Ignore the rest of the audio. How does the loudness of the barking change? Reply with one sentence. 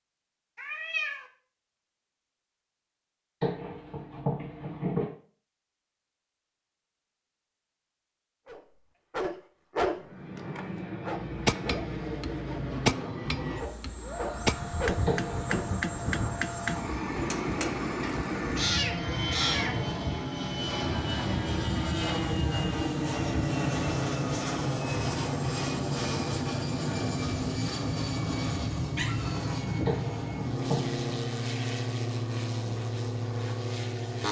The volume of the barking goes down, then up.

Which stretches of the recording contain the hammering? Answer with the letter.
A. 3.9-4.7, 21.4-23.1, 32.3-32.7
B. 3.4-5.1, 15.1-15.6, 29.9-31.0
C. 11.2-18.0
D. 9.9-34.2
C.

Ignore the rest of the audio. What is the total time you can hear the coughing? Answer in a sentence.
You can hear the coughing for 3 seconds altogether.